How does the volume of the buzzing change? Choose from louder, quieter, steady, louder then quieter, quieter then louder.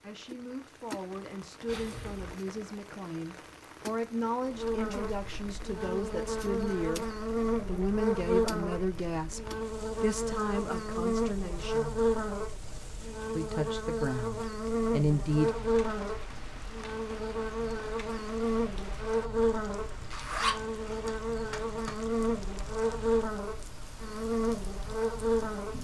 steady.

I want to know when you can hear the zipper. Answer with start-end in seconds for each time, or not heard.
1.6-2.4, 20.1-21.9.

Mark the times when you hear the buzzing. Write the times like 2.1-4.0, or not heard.
4.5-25.7.